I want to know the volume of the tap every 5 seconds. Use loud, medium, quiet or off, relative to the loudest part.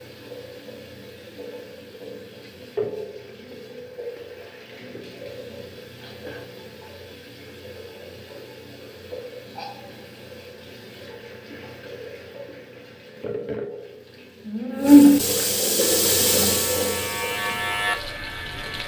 quiet, quiet, loud, loud.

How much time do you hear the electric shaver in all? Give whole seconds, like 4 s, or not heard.
3 s.